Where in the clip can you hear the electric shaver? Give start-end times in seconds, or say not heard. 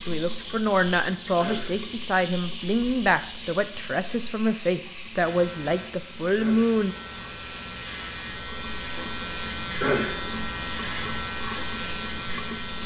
5.2-12.8.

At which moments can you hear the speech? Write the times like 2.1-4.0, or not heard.
0.1-7.0.